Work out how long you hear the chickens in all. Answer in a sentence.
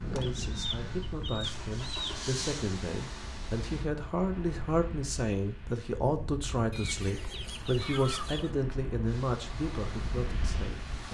You can hear the chickens for 4 seconds altogether.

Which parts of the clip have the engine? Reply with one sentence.
The engine can be heard from 0.0 to 3.9 s and from 9.1 to 11.0 s.